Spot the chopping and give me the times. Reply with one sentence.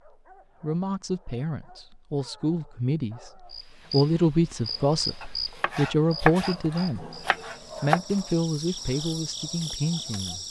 You can hear the chopping from 5.2 to 8.0 s.